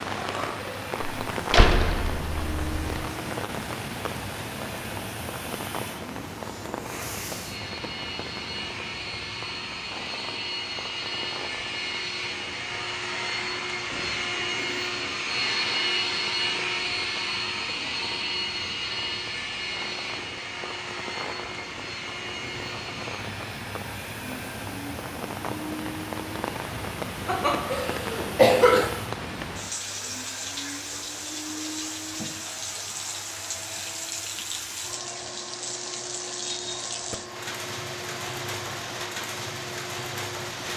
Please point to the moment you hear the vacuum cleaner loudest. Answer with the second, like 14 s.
16 s.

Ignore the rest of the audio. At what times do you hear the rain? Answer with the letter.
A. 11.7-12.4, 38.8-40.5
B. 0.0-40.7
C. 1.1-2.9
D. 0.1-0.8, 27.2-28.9
B.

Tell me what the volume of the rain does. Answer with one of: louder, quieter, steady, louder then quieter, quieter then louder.
quieter then louder.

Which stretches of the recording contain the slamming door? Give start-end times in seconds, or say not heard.
1.1-2.9.